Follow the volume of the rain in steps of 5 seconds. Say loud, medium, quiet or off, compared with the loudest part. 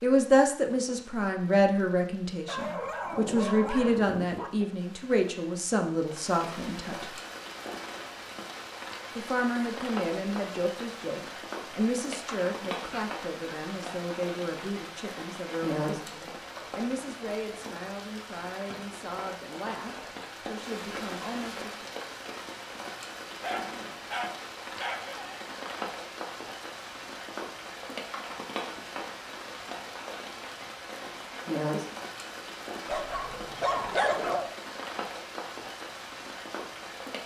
quiet, loud, loud, loud, loud, loud, loud, loud.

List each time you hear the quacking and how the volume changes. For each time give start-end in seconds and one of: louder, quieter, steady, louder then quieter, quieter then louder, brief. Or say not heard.
not heard.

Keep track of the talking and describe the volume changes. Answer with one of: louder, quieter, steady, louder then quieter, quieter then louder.
quieter.